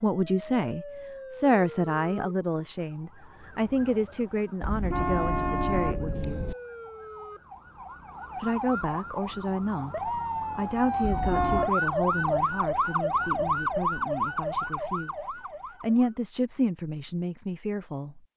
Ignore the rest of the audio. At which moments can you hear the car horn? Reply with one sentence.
You can hear the car horn from 4.6 to 6.5 s and from 11.0 to 11.7 s.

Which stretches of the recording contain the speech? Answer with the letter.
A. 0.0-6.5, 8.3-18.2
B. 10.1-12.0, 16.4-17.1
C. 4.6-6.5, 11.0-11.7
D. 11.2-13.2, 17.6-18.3
A.